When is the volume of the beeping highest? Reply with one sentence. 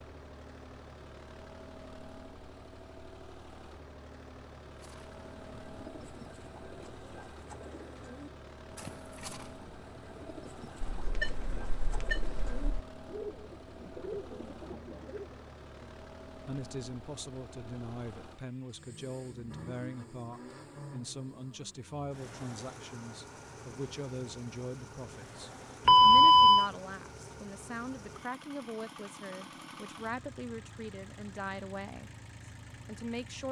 The volume of the beeping peaks at 26 seconds.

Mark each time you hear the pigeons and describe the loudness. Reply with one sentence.
The pigeons can be heard from 4.8 to 15.4 s, getting louder.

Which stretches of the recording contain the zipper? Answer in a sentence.
You can't hear the zipper here.